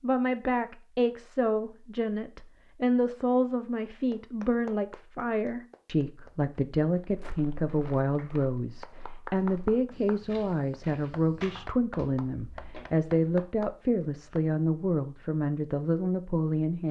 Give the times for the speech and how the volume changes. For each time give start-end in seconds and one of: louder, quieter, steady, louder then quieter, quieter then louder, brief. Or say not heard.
0.0-16.8 steady.